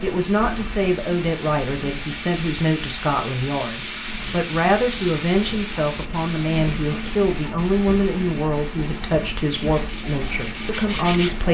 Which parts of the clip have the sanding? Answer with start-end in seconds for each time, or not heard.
9.5-11.3.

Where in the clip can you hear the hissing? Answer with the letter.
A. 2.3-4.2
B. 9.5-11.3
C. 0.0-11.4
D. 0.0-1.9
C.